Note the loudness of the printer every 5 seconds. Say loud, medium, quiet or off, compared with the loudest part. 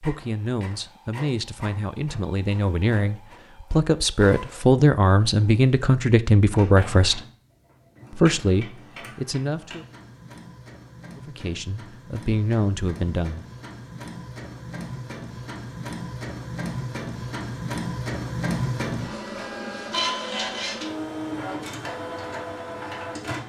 quiet, quiet, medium, loud, loud.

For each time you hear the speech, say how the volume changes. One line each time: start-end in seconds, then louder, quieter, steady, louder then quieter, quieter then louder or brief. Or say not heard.
0.0-7.2 louder
8.1-9.8 brief
11.2-13.4 brief.